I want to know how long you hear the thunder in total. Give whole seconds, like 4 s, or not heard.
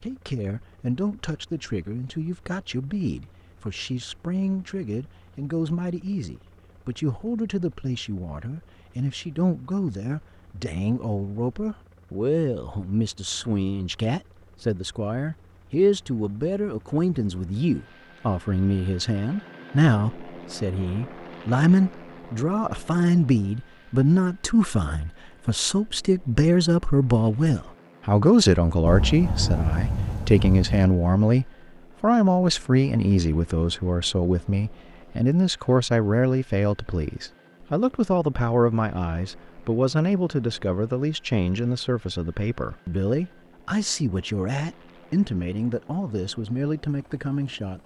2 s.